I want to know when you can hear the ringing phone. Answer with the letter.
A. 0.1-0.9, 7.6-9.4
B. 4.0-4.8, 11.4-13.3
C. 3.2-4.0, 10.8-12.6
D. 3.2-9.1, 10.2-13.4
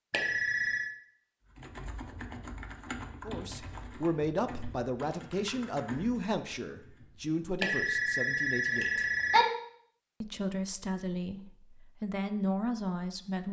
A.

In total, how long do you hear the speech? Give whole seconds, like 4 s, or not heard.
9 s.